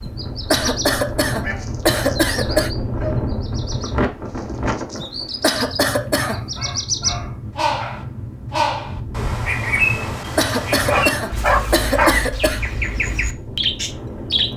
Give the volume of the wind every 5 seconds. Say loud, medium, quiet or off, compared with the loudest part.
loud, medium, medium.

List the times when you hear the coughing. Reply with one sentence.
You can hear the coughing from 0.0 to 2.7 s, from 5.0 to 6.4 s and from 9.9 to 12.6 s.